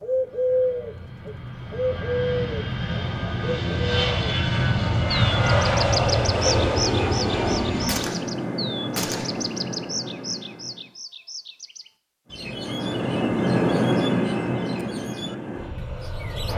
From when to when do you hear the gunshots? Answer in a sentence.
The gunshots can be heard from 7.8 to 9.6 s.